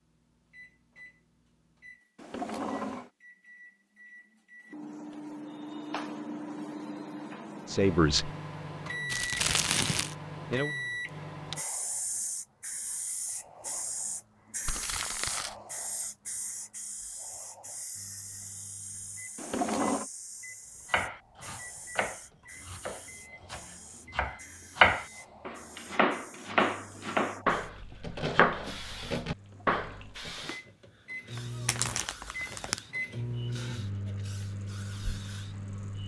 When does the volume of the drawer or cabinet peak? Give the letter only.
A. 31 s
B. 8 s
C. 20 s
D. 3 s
C.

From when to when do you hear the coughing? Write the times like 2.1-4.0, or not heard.
not heard.